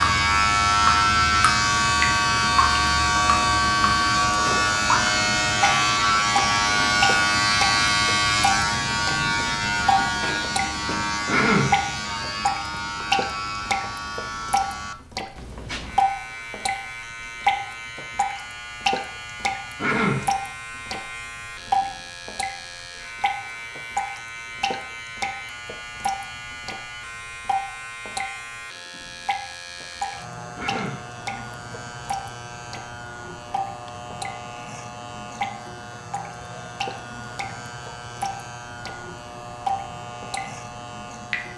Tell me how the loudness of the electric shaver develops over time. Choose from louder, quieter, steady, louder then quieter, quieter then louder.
quieter.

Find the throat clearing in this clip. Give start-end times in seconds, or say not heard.
11.2-11.8, 19.8-20.3, 30.6-31.1.